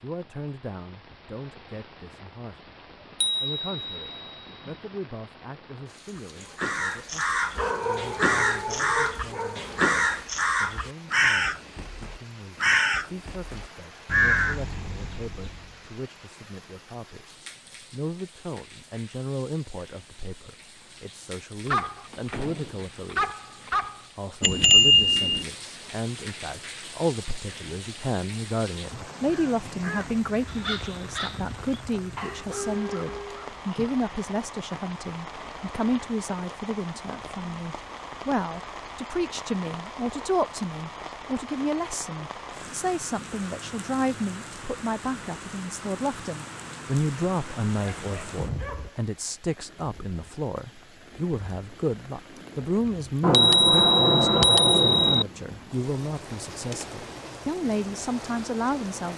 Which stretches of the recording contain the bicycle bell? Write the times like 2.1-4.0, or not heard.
3.2-4.7, 24.4-25.4, 53.2-55.2.